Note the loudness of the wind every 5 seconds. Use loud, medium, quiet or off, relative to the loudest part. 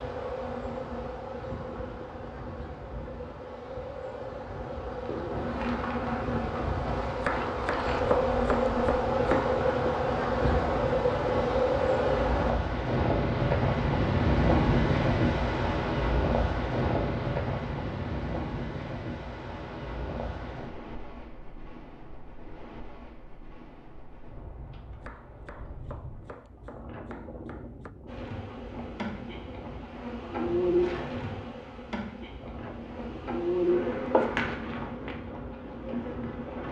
quiet, medium, loud, loud, quiet, quiet, quiet, quiet.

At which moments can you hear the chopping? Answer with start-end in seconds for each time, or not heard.
7.2-9.6, 25.0-27.9.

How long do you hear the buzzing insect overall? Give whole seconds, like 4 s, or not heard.
21 s.